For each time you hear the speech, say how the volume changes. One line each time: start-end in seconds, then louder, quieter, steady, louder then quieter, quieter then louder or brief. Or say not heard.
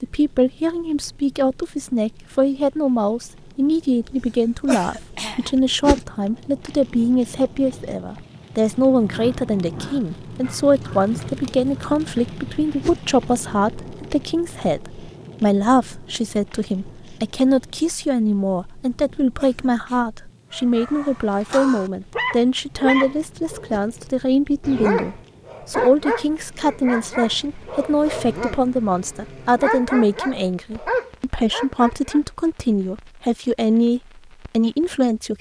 0.0-35.3 steady.